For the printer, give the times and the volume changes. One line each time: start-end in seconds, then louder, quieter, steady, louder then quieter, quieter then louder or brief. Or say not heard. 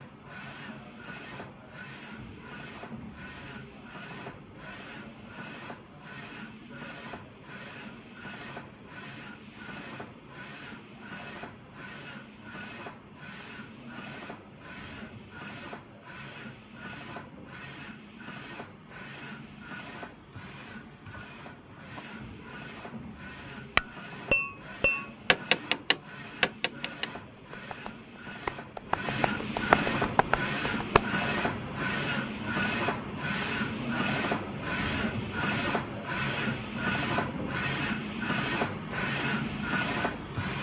0.0-40.5 louder.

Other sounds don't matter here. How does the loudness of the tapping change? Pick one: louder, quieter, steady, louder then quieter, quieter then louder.
quieter then louder.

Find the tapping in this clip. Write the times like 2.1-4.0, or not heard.
23.8-31.1.